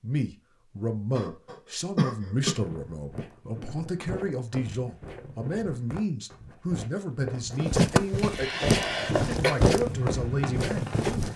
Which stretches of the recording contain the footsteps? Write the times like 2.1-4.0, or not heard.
2.5-11.3.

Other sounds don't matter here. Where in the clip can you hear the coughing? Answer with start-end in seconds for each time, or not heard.
1.1-2.5, 7.8-9.6.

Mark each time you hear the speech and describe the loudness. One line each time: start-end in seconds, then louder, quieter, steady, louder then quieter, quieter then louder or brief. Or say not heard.
0.0-11.2 steady.